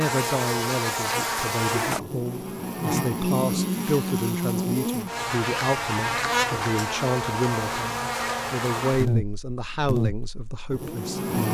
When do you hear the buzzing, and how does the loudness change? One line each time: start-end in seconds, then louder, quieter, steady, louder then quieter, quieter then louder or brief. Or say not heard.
0.0-11.4 steady.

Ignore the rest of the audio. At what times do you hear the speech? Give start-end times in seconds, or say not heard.
0.0-11.4.